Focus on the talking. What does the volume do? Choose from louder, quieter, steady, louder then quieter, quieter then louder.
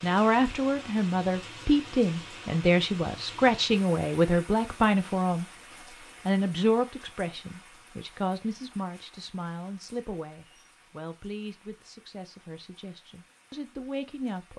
quieter.